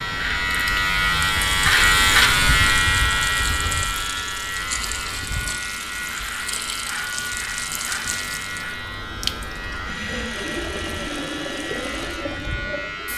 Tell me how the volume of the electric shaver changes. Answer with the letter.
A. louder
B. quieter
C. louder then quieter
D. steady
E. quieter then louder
B.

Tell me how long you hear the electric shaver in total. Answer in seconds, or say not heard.
13 s.